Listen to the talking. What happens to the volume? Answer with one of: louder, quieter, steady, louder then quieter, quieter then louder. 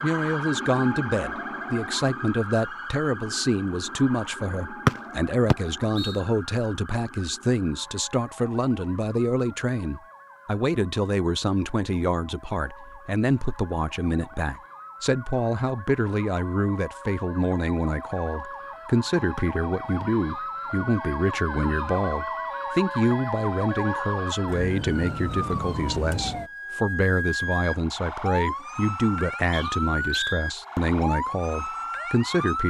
steady.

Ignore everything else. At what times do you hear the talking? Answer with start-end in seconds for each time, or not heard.
0.0-32.6.